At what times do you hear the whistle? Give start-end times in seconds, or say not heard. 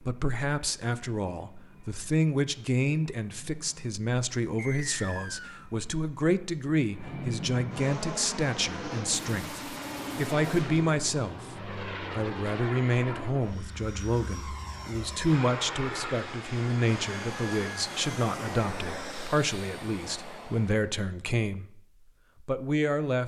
4.5-5.7.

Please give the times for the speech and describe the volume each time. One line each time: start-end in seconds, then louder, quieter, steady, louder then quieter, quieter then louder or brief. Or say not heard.
0.0-21.8 steady
22.4-23.2 brief.